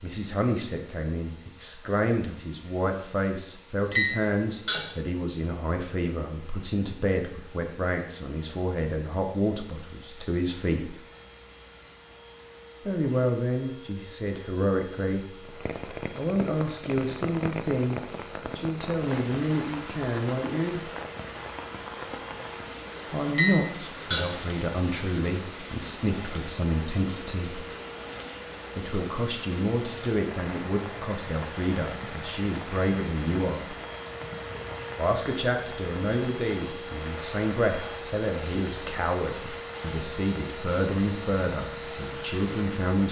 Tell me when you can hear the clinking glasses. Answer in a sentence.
You can hear the clinking glasses from 3.9 to 4.9 s and from 23.4 to 24.4 s.